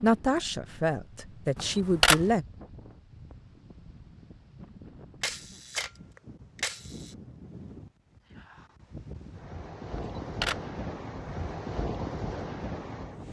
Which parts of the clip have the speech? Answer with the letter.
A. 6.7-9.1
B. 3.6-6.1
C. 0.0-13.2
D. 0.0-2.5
D.